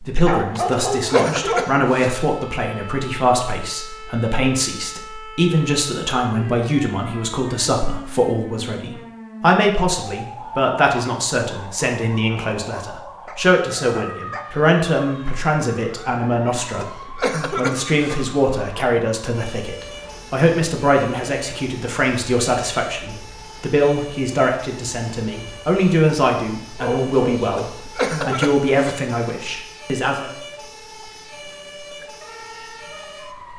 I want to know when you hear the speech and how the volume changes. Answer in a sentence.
You can hear the speech from 0.0 to 30.3 s, at a steady volume.